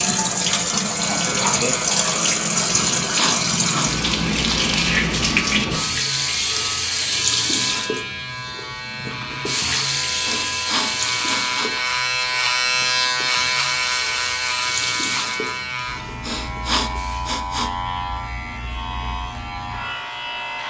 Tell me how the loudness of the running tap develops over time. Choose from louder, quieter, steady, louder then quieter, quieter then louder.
quieter.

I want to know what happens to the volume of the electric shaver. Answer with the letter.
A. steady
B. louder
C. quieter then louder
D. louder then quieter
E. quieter
D.